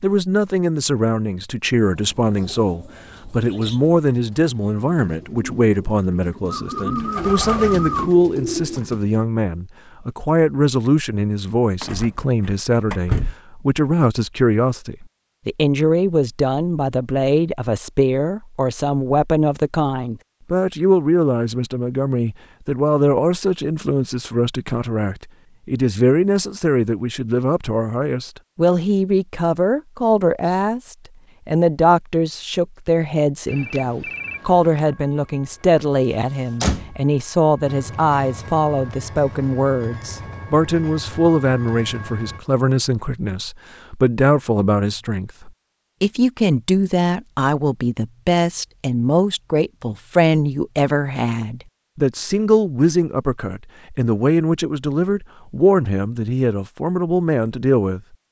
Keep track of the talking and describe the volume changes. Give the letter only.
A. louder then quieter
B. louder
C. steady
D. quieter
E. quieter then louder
C.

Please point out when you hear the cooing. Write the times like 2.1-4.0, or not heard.
2.0-9.2.